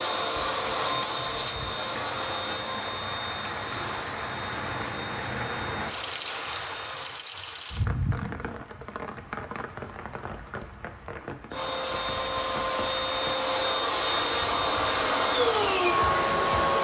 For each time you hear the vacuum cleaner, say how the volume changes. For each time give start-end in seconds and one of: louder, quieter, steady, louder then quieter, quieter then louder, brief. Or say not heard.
0.0-7.1 quieter
11.5-16.7 louder.